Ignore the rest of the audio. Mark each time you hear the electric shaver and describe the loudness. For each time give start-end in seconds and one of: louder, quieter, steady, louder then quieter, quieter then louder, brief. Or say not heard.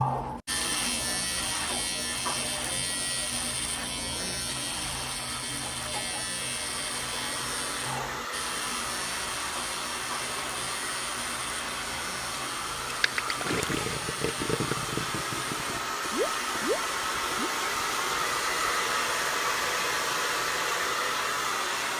0.0-21.9 quieter.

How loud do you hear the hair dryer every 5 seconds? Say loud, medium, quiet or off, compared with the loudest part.
off, medium, medium, loud, loud.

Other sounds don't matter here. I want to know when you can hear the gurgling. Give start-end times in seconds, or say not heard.
12.9-17.5.